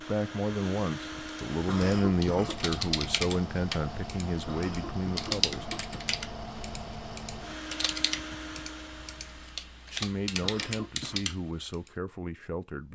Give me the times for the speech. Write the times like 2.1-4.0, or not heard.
0.0-5.8, 9.9-12.8.